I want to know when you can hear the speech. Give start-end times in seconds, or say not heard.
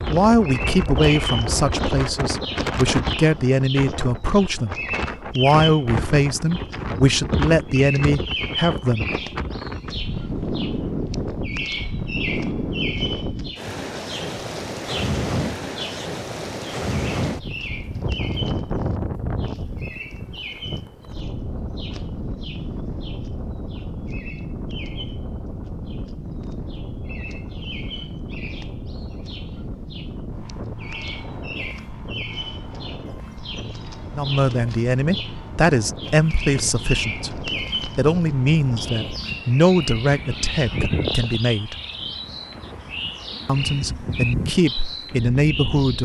0.1-4.8, 5.3-9.1, 34.1-41.8, 43.5-45.9.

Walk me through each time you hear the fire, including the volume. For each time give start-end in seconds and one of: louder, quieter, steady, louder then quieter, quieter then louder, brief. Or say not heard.
not heard.